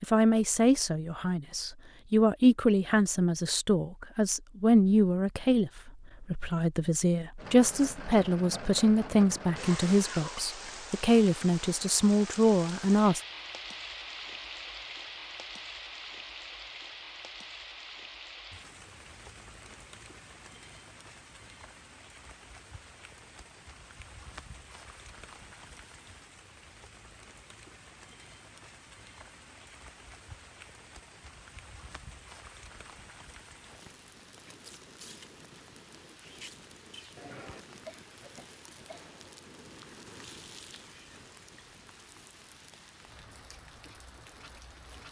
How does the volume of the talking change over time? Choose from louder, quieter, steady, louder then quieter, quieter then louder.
steady.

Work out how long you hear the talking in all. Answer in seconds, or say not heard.
13 s.